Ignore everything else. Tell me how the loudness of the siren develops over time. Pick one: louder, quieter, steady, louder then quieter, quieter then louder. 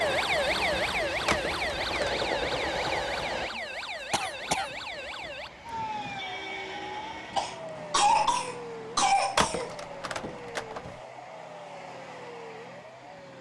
quieter.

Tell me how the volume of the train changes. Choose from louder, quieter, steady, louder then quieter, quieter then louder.
quieter.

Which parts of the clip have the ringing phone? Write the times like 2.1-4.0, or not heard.
1.2-2.3, 9.3-10.9.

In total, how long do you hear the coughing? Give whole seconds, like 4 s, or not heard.
3 s.